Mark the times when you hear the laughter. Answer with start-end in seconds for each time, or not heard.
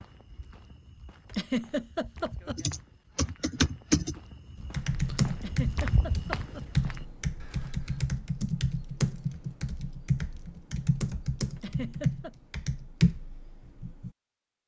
1.3-2.5, 5.3-6.7, 11.6-12.3.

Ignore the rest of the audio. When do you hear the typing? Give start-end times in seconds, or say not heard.
2.5-14.1.